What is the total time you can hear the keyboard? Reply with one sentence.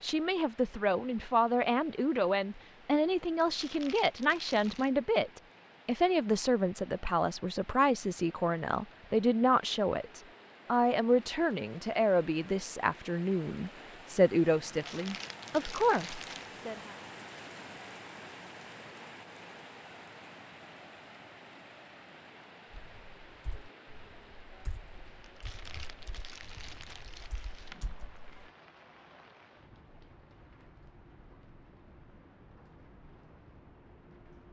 You can hear the keyboard for 6 seconds altogether.